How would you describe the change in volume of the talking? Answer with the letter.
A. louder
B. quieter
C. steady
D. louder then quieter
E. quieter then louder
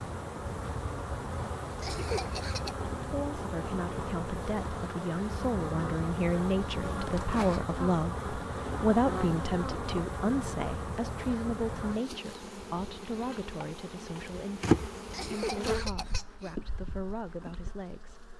D.